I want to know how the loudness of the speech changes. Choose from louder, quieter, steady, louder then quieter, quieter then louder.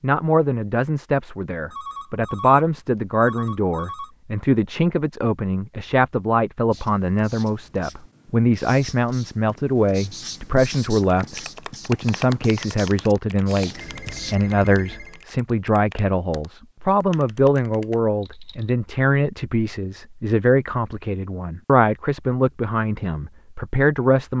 steady.